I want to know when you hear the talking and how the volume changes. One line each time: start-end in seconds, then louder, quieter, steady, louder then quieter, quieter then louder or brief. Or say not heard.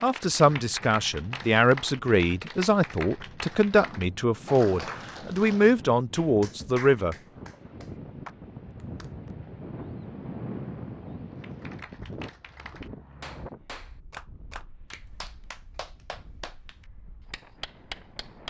0.0-7.2 steady.